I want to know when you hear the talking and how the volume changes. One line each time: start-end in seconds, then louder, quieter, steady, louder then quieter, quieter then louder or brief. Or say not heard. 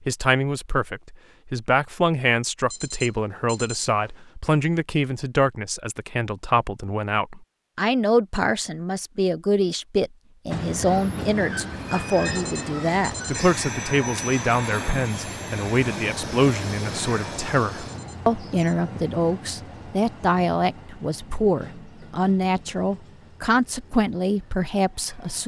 0.1-25.4 steady.